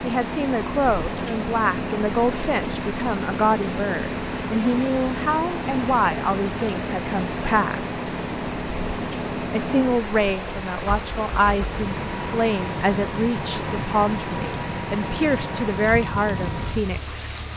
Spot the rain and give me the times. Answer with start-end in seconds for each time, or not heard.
0.0-17.5.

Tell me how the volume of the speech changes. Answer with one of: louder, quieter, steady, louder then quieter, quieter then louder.
steady.